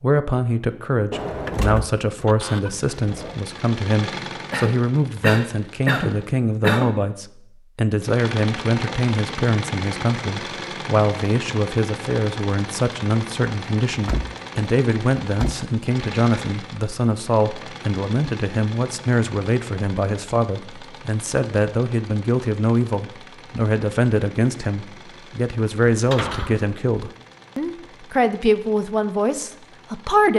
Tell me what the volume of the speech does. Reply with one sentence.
The loudness of the speech stays about the same.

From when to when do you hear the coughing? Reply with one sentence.
The coughing can be heard from 4.5 to 7.0 s.